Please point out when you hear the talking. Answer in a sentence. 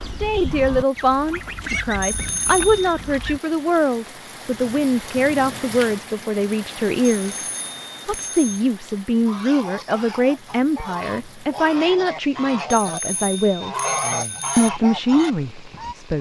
The talking can be heard from 0.1 to 7.5 s, from 8.1 to 13.8 s and from 14.6 to 16.1 s.